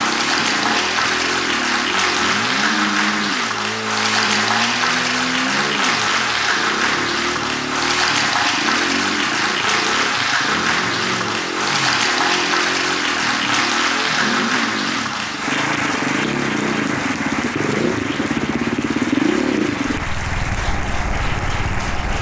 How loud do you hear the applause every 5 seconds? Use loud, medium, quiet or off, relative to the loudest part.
loud, loud, loud, medium, medium.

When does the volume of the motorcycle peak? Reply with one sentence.
The loudest moment of the motorcycle is at 19 seconds.